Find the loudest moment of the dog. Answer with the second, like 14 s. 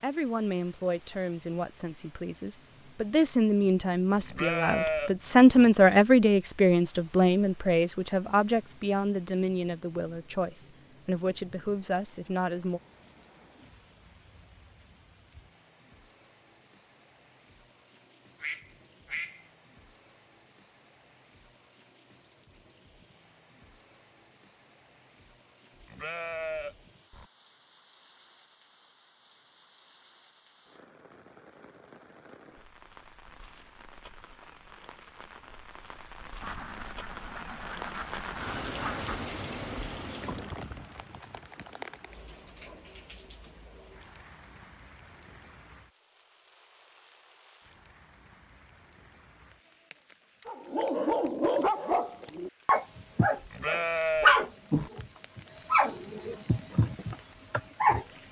54 s.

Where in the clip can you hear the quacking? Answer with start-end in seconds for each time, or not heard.
18.4-19.4, 36.4-39.2.